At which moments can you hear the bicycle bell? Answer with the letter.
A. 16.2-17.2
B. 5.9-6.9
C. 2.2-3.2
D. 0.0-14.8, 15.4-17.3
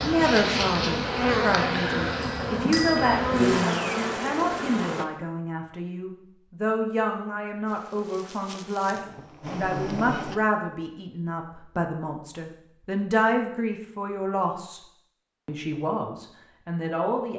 C.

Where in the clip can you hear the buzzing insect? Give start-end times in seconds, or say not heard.
0.0-5.0, 7.7-10.3.